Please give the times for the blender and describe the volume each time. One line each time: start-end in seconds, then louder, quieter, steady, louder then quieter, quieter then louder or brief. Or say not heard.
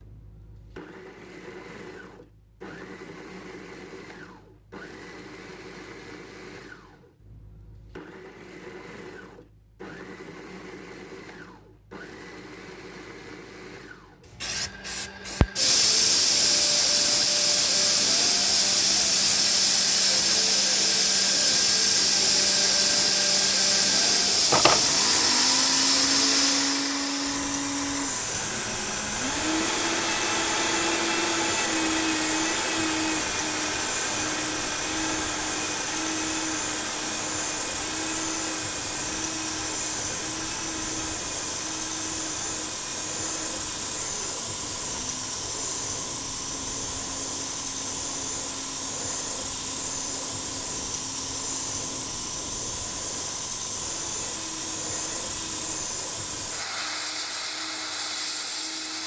0.0-59.0 louder then quieter.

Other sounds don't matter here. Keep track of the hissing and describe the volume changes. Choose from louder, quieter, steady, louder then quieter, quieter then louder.
quieter.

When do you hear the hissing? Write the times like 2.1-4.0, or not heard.
14.4-59.0.